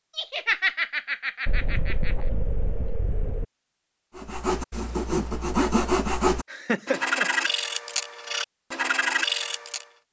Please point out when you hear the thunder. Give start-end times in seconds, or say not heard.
1.4-3.5.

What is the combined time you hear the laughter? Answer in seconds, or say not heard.
3 s.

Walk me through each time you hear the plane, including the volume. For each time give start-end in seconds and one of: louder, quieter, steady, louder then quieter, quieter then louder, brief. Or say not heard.
not heard.